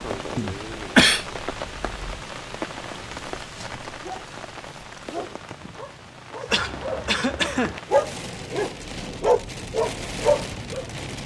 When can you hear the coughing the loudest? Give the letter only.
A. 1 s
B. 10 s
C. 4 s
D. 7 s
A.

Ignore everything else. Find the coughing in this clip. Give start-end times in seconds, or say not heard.
0.3-1.2, 6.5-7.8.